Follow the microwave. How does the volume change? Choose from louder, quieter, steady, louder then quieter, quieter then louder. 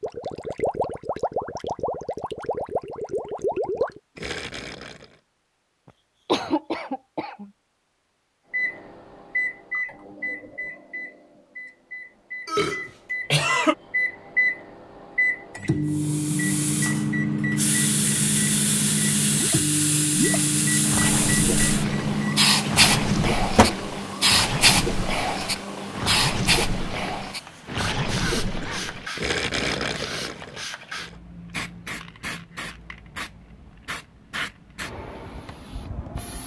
louder.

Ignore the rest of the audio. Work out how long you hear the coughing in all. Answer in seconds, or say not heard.
3 s.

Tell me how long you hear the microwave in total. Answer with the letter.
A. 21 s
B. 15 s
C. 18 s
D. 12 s
B.